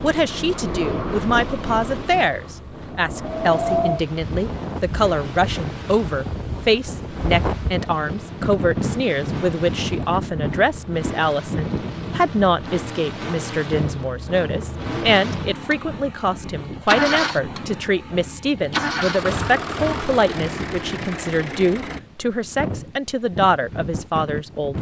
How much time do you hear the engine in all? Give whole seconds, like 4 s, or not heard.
22 s.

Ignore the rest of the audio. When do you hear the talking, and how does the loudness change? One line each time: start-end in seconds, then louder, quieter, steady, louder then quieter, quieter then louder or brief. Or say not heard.
0.0-24.7 steady.